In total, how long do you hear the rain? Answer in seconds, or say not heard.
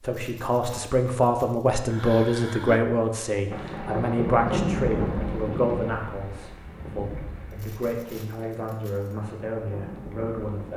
7 s.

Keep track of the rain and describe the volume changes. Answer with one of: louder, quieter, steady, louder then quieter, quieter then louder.
quieter then louder.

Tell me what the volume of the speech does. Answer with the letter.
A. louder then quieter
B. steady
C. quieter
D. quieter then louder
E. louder
C.